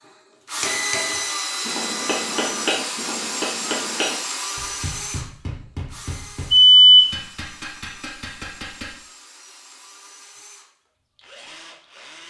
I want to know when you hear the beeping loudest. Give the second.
7 s.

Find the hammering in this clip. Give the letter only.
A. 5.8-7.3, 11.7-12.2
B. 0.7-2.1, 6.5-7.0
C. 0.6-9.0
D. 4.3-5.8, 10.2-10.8
C.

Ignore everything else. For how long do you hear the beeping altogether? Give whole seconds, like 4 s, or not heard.
2 s.